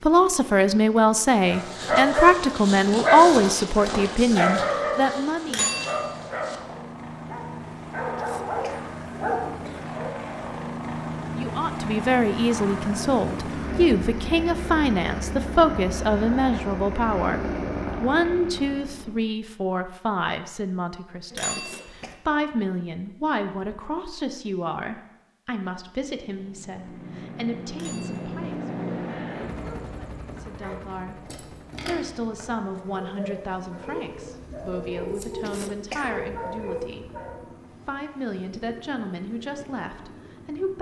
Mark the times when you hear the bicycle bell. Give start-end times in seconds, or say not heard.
5.5-6.0, 21.3-22.1, 27.7-28.4.